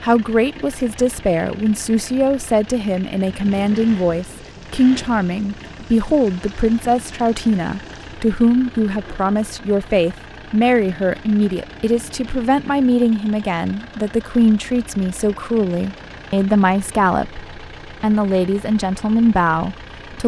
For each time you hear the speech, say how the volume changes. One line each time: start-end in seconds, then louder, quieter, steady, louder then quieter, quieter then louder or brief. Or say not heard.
0.0-20.2 steady.